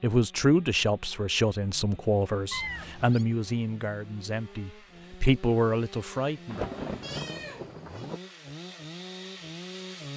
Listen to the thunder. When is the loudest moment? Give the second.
7 s.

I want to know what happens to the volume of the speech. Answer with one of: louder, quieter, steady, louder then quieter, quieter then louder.
quieter then louder.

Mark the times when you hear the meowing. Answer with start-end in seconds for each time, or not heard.
2.5-3.2, 7.0-8.1.